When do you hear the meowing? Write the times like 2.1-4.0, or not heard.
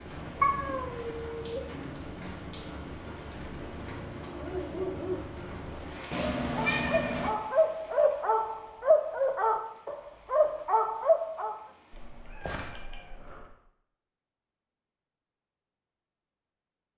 0.4-1.6, 6.1-7.3, 11.9-13.5.